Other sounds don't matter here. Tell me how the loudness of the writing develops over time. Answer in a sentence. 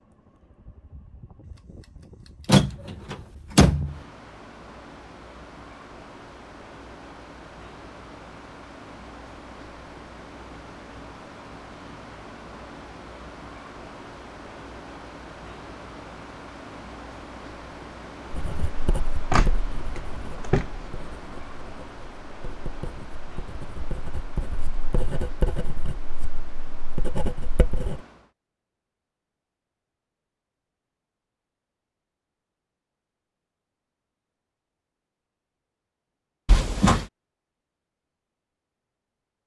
The volume of the writing goes down, then up.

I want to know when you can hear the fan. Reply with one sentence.
The fan can be heard from 0.0 to 28.4 s.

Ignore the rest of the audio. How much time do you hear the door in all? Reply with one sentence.
The door can be heard for 4 seconds in total.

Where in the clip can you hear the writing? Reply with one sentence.
You can hear the writing from 18.3 to 28.0 s.